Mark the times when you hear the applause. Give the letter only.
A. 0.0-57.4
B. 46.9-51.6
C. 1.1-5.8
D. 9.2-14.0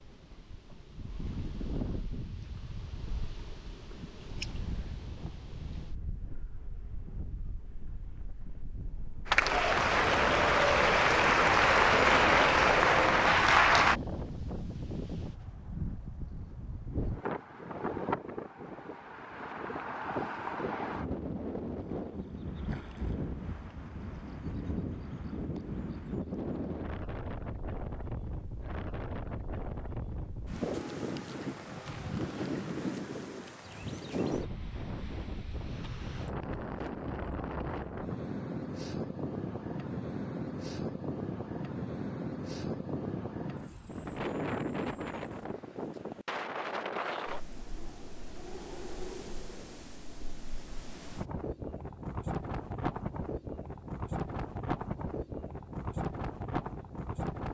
D.